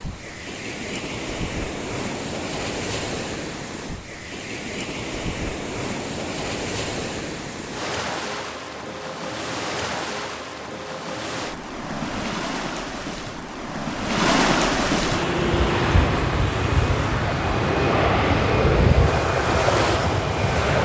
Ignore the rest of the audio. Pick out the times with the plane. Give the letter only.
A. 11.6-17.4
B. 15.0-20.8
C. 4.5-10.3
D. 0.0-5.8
B.